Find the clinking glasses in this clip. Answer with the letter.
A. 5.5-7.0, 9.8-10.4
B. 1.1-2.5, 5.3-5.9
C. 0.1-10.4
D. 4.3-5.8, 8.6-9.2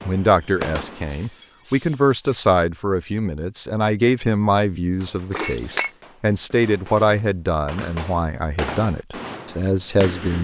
B.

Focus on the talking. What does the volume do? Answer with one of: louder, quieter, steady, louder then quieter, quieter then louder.
steady.